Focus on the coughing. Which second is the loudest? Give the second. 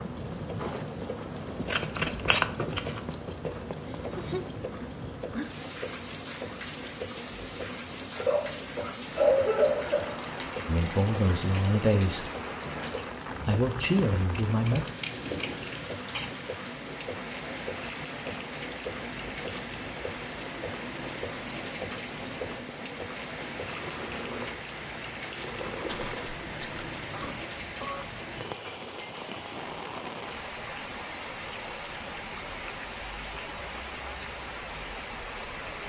9 s.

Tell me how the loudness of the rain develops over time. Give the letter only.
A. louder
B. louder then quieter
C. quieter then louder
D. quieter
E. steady
E.